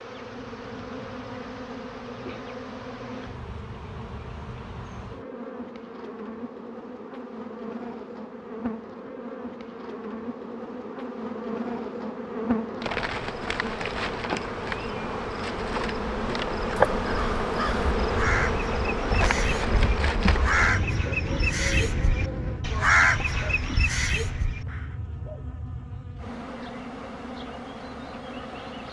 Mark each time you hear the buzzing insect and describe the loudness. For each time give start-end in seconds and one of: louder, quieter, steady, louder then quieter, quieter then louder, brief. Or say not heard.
0.0-28.8 louder then quieter.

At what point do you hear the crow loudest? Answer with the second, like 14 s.
23 s.